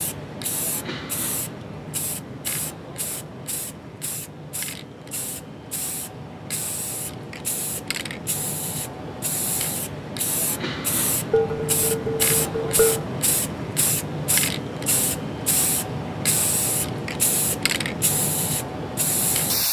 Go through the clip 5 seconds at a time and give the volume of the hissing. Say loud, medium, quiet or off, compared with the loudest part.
medium, medium, loud, loud.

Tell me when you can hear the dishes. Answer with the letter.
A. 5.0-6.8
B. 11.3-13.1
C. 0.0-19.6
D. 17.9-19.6
B.